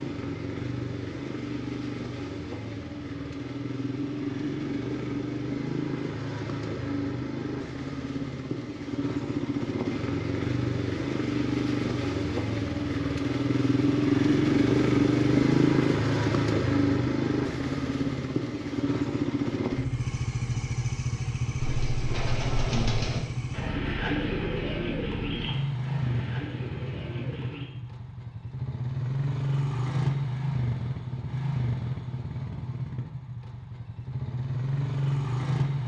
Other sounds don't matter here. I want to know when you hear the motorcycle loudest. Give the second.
15 s.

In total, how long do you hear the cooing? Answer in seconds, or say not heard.
6 s.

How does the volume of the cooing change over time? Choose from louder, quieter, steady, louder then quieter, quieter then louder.
quieter.